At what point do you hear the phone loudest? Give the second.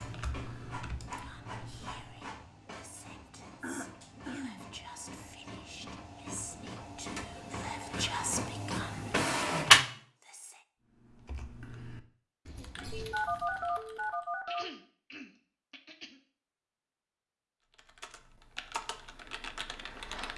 13 s.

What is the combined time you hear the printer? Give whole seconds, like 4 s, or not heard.
10 s.